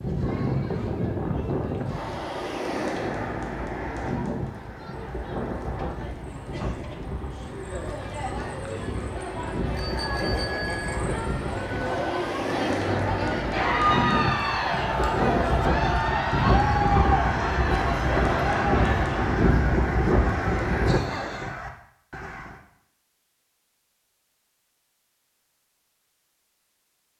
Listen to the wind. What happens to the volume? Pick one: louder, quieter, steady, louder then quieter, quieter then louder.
quieter then louder.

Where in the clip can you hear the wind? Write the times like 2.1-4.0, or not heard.
0.0-21.0.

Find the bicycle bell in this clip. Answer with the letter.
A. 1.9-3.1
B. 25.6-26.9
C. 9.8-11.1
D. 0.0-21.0
C.